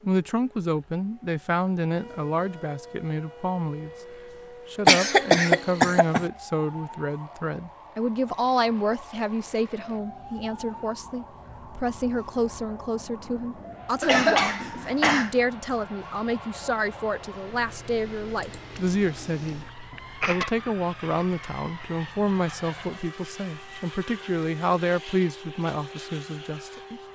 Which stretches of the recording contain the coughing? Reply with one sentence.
You can hear the coughing from 4.8 to 6.2 s, from 14.0 to 15.3 s and from 18.8 to 20.5 s.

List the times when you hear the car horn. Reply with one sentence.
The car horn can't be heard in this clip.